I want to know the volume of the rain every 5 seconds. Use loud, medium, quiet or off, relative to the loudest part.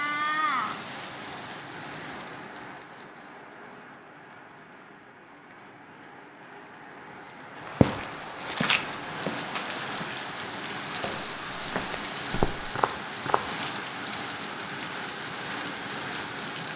loud, medium, loud, loud.